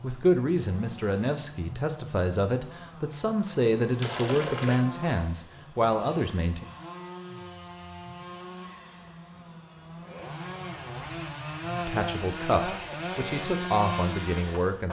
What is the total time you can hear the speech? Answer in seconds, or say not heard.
10 s.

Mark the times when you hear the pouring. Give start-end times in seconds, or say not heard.
4.0-4.8.